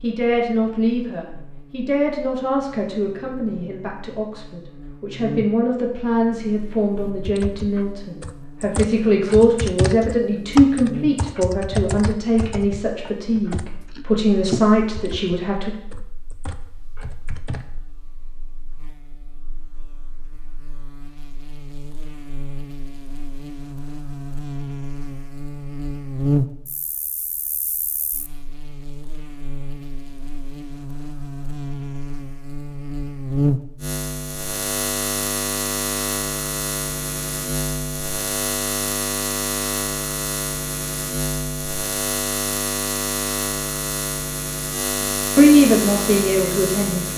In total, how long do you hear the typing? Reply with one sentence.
The typing can be heard for 11 seconds in total.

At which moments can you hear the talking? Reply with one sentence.
The talking can be heard from 0.0 to 15.7 s and from 45.4 to 47.1 s.